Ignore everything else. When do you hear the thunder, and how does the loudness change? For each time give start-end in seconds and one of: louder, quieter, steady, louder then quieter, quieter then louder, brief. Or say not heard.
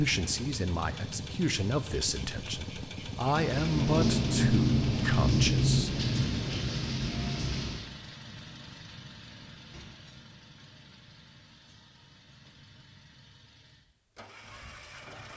3.4-7.8 quieter.